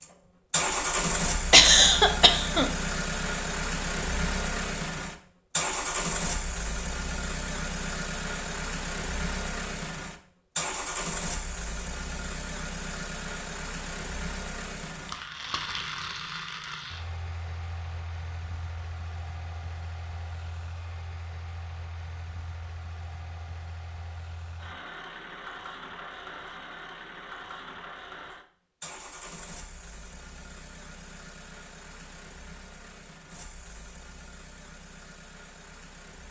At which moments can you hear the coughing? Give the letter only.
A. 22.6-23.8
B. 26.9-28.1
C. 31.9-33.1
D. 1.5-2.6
D.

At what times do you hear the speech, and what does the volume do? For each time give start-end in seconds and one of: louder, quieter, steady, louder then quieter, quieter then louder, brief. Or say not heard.
not heard.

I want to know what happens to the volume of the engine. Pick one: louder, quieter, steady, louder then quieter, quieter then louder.
quieter.